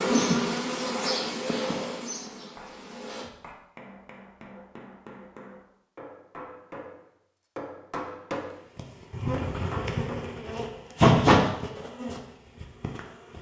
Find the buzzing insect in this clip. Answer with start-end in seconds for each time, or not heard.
0.0-3.3, 8.8-13.3.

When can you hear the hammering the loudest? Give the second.
8 s.